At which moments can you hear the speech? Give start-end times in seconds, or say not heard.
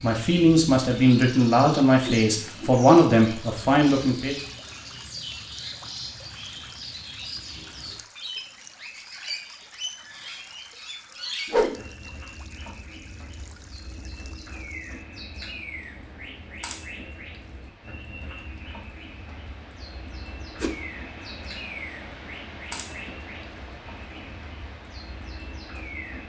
0.0-4.3.